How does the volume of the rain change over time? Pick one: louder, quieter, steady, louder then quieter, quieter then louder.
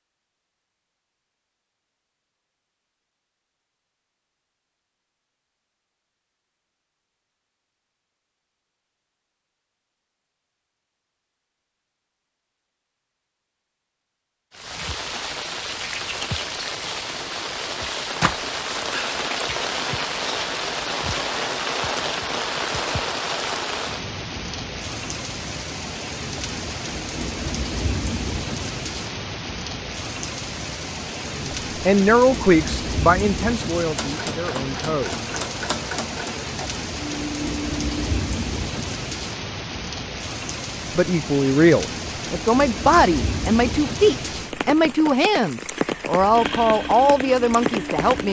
steady.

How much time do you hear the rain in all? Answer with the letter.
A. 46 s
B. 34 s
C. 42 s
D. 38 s
B.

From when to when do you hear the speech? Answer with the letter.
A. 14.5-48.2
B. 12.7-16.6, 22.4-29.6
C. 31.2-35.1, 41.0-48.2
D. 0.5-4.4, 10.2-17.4
C.